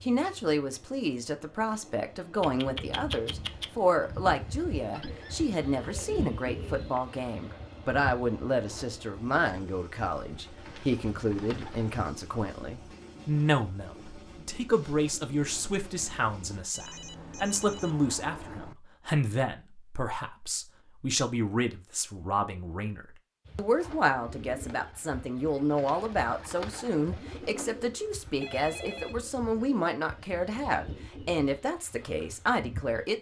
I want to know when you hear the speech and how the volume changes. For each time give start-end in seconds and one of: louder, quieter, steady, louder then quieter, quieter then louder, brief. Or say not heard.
0.0-33.1 steady.